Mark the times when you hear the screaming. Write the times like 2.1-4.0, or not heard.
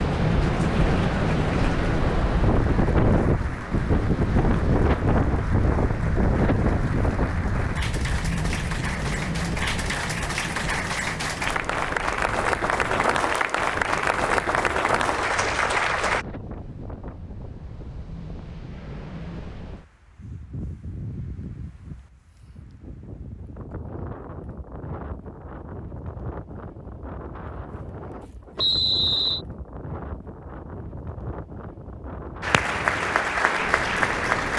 not heard.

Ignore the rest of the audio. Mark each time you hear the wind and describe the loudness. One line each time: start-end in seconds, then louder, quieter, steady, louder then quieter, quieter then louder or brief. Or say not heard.
0.0-34.5 quieter.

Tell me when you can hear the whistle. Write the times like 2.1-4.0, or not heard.
28.6-29.4.